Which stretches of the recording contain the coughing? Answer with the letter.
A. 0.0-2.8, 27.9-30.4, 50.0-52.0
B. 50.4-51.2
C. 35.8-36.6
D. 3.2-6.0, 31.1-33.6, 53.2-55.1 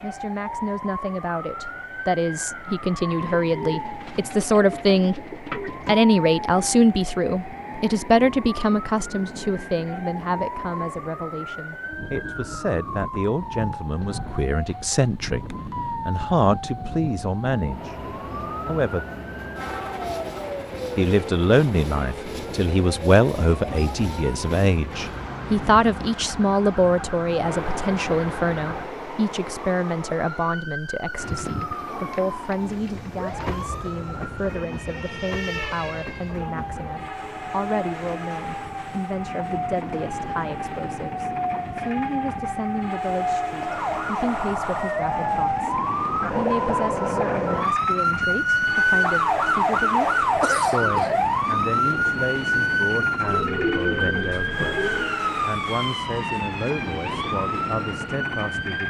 B.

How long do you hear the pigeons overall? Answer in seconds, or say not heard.
7 s.